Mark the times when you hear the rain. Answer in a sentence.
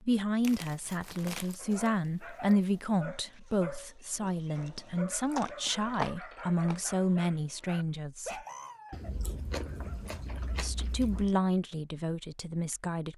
You can't hear the rain here.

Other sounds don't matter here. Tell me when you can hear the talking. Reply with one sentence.
You can hear the talking from 0.0 to 8.4 s and from 10.6 to 13.1 s.